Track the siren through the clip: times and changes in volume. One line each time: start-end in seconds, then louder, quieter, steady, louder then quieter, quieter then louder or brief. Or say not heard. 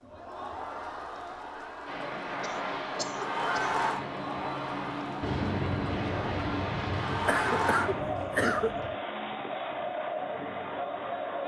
not heard.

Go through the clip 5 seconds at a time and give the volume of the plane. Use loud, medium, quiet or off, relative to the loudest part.
loud, loud, off.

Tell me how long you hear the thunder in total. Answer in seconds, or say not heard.
4 s.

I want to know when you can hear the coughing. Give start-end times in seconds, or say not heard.
2.4-3.8, 7.1-8.8.